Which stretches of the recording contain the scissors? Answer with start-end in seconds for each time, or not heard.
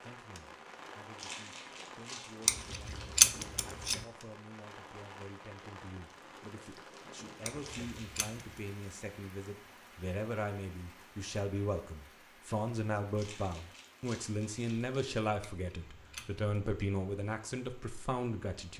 2.5-4.0, 7.5-8.4, 15.4-16.4.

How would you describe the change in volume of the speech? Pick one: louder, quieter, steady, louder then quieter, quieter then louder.
louder.